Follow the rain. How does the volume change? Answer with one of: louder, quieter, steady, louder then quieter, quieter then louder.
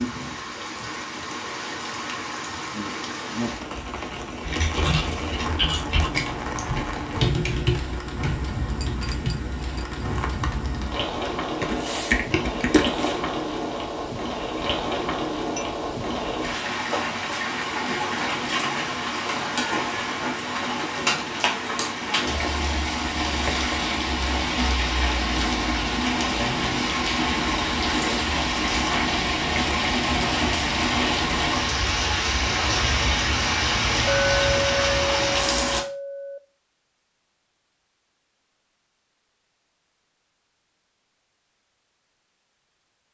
louder.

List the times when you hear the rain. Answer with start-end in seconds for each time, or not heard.
0.0-35.9.